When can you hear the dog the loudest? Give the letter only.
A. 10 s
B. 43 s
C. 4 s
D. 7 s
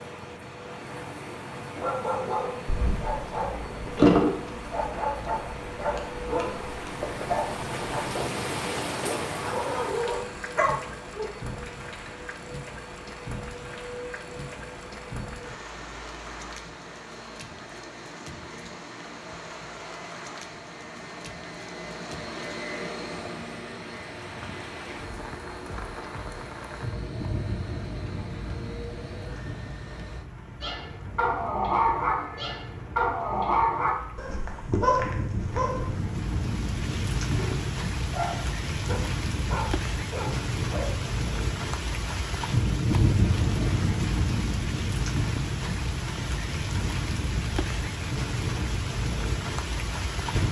C.